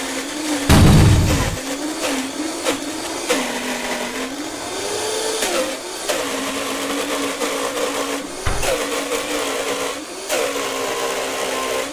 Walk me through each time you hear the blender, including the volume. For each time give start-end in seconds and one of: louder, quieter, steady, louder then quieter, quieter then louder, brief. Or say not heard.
0.0-11.8 steady.